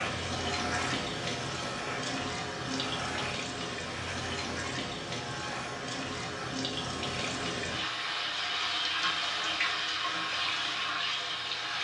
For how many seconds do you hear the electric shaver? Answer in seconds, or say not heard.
12 s.